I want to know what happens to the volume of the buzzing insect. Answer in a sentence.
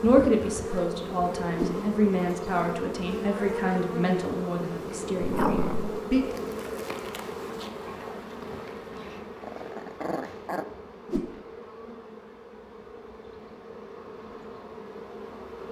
The volume of the buzzing insect goes down.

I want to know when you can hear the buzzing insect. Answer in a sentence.
You can hear the buzzing insect from 0.0 to 15.6 s.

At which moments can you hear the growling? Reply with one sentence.
The growling can be heard from 5.2 to 6.0 s and from 8.9 to 10.7 s.